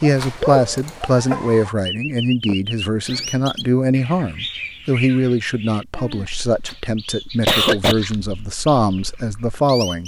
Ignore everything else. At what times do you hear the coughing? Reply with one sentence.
You can hear the coughing from 0.1 to 1.4 s, from 6.0 to 6.8 s and from 7.5 to 8.0 s.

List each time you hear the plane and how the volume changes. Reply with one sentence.
The plane can't be heard in this clip.